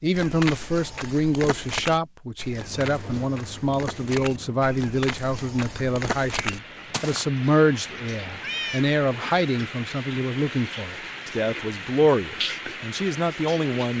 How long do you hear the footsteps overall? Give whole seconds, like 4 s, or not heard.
7 s.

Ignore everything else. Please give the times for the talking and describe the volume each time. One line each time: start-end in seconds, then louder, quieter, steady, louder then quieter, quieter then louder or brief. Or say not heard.
0.0-13.9 steady.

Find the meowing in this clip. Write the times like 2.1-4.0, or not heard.
8.2-8.9.